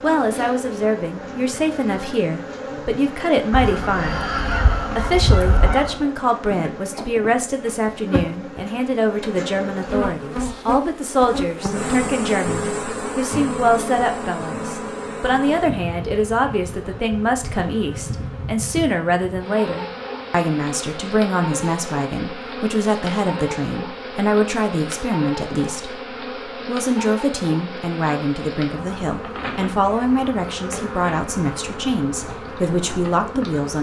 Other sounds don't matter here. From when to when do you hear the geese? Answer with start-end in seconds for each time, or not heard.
3.5-6.0.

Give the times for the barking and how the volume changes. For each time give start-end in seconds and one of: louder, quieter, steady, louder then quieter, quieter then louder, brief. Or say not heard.
not heard.